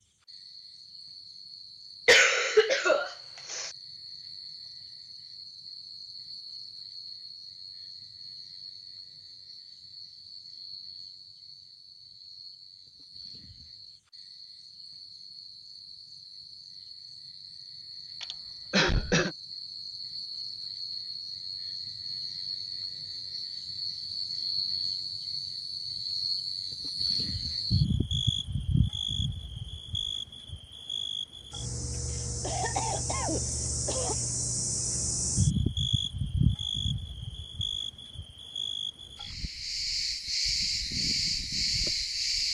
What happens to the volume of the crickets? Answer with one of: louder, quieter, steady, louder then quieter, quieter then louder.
louder.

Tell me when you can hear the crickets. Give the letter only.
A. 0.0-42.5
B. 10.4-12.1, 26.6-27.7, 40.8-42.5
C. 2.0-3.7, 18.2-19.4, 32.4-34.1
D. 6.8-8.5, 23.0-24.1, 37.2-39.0
A.